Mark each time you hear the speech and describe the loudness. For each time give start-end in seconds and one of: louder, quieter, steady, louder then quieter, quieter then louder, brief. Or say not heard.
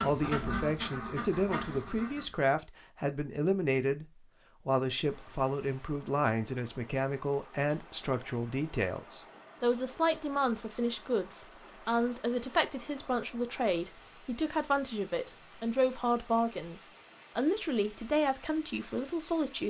0.0-19.6 steady.